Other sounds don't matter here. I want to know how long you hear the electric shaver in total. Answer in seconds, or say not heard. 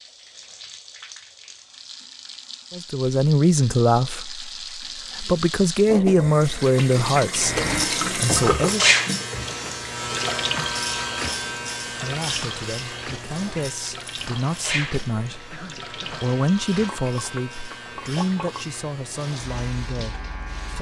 13 s.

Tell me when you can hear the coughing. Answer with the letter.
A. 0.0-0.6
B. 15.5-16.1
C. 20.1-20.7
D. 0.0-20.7
B.